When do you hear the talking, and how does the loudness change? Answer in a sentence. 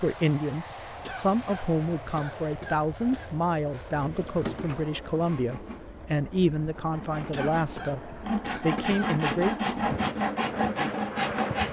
You can hear the talking from 0.0 to 9.7 s, at a steady volume.